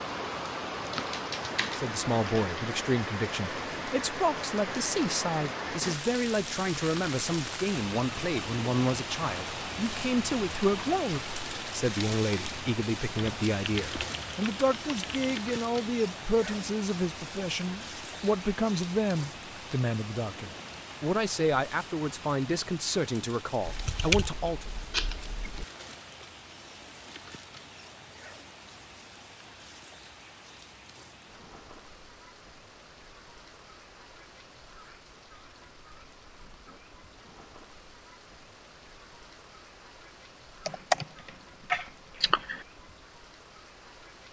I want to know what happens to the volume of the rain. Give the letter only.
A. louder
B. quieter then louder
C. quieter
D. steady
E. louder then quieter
C.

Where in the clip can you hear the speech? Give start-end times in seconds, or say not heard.
1.8-24.7.